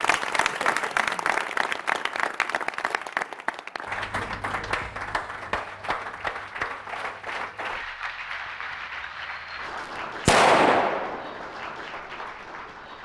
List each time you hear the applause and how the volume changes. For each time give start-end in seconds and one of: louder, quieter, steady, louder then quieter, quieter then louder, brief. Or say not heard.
0.0-12.9 quieter.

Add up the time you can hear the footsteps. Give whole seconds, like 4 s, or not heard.
not heard.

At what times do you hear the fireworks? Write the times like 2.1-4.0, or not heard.
10.2-11.7.